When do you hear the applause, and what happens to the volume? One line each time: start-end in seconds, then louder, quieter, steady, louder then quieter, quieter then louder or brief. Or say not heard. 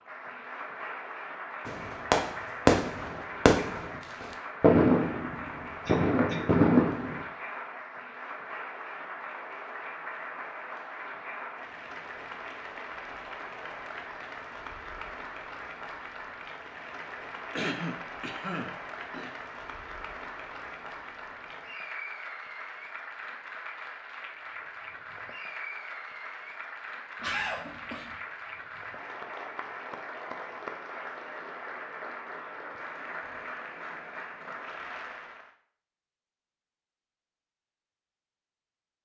0.0-35.5 steady.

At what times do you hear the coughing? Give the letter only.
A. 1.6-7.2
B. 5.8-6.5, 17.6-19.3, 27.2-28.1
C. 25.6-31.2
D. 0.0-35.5
B.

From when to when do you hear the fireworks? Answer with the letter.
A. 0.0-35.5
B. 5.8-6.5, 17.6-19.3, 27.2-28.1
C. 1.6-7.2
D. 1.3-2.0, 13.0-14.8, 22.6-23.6
C.